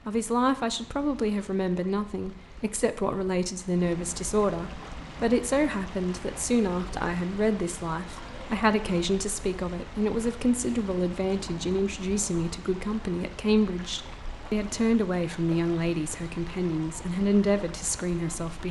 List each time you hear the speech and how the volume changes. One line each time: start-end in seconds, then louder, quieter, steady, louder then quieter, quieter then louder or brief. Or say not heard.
0.1-18.6 steady.